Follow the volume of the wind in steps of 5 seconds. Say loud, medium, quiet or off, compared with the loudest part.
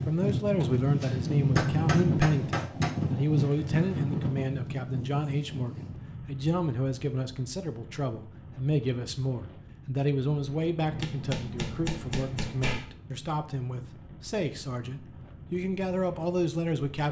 loud, quiet, quiet, quiet.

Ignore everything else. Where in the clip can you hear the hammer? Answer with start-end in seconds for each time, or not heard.
1.0-3.0, 10.9-12.9.